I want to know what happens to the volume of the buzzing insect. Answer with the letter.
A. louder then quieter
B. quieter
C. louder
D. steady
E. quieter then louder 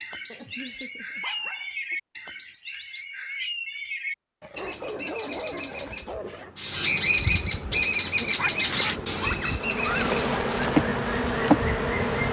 C.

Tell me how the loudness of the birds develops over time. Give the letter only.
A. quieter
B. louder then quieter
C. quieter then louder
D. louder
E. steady
B.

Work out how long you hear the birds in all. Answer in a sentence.
The birds can be heard for 12 seconds in total.